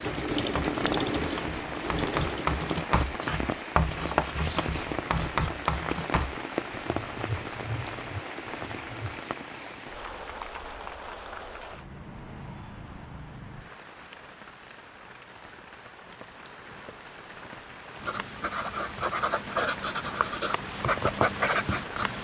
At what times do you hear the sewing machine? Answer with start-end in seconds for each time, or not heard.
0.0-2.8.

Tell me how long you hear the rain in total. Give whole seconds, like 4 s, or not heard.
22 s.